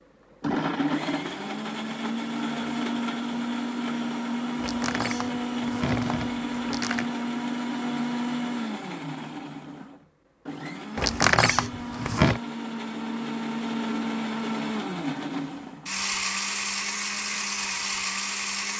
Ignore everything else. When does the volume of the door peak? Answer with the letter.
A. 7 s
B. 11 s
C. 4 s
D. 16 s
B.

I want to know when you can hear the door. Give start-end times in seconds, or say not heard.
4.5-7.1, 10.9-12.4.